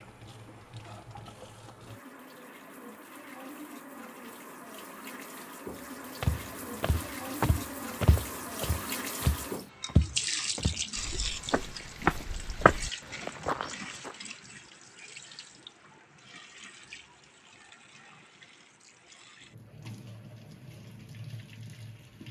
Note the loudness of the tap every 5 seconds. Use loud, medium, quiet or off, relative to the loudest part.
medium, loud, loud, quiet, medium.